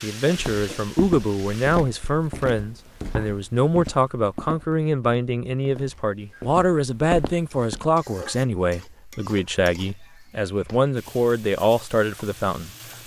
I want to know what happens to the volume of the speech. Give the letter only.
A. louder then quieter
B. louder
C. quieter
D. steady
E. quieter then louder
D.